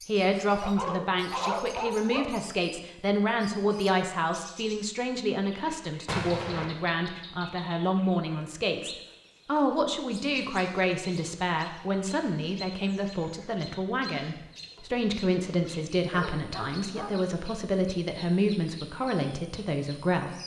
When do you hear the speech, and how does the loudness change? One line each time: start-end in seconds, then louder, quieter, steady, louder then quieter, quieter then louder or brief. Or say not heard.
0.1-20.4 steady.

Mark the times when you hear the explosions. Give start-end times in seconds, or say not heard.
6.0-6.7.